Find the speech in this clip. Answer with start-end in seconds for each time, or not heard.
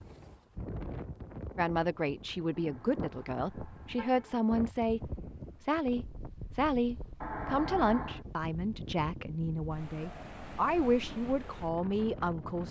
1.6-12.6.